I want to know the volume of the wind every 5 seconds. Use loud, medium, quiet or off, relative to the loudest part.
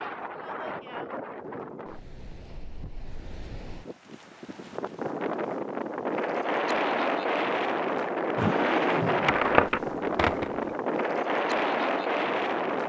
quiet, loud, loud.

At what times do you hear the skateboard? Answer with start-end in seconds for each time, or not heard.
8.3-10.7.